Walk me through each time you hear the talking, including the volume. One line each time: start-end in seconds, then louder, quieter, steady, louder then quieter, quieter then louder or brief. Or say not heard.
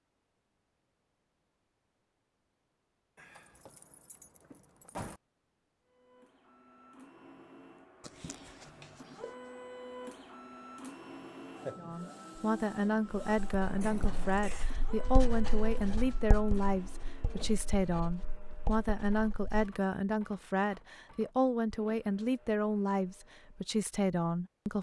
11.8-24.7 steady.